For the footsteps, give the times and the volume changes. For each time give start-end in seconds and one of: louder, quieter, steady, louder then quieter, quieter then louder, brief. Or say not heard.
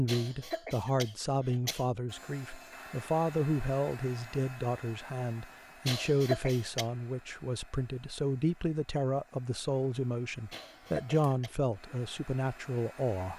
not heard.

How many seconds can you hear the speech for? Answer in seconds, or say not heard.
13 s.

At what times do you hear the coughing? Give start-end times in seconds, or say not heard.
0.1-1.9, 5.8-6.8, 10.5-11.6.